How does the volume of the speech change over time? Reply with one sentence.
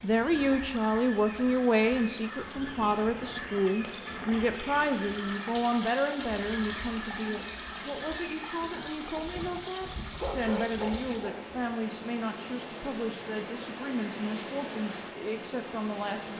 The volume of the speech goes down.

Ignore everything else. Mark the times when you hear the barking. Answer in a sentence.
You can hear the barking from 9.9 to 11.6 s.